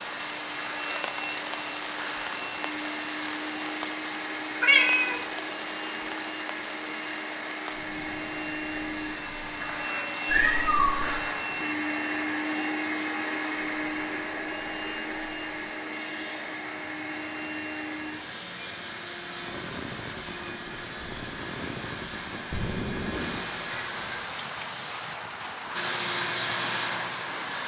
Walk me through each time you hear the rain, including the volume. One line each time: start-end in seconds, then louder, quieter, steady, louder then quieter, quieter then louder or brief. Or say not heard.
0.0-27.6 quieter then louder.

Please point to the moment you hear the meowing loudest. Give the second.
5 s.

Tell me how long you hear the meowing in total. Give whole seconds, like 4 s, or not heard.
3 s.